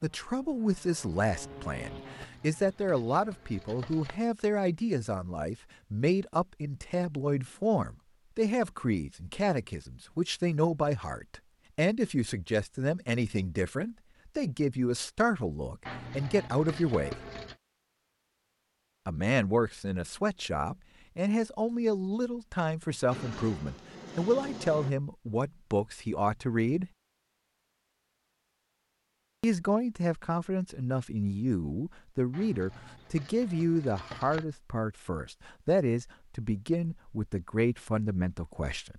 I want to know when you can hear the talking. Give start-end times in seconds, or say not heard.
0.0-17.1, 19.1-26.9, 29.4-38.9.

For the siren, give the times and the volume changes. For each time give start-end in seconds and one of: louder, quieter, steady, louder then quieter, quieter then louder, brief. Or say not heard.
not heard.